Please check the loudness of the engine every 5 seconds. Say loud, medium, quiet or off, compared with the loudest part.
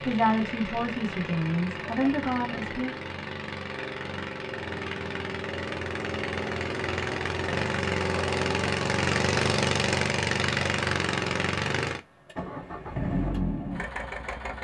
medium, loud, loud.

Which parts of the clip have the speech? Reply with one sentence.
You can hear the speech from 0.0 to 3.0 s.